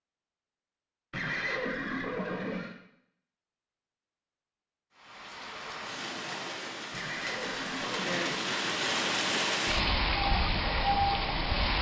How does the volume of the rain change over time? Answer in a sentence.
The volume of the rain goes up.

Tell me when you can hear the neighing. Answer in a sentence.
The neighing can be heard from 1.1 to 2.8 s and from 6.9 to 8.4 s.